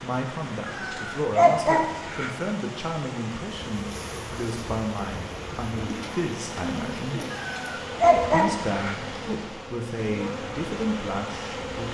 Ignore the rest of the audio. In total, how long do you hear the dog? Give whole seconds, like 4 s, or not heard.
3 s.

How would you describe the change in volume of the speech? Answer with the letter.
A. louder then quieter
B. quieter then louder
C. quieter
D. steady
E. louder
D.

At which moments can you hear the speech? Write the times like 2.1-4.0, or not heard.
0.0-7.2, 8.3-11.8.